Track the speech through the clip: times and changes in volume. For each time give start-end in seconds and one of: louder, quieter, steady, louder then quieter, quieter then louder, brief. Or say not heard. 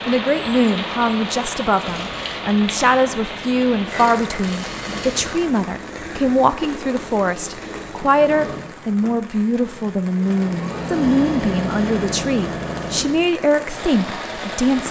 0.1-14.8 steady.